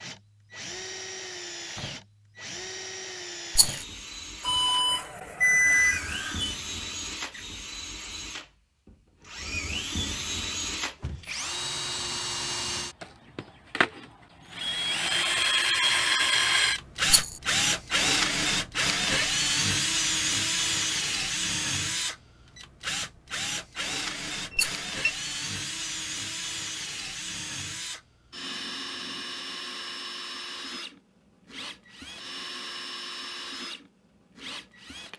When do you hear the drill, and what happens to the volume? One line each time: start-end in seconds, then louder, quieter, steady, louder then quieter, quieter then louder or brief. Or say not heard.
0.0-35.1 louder then quieter.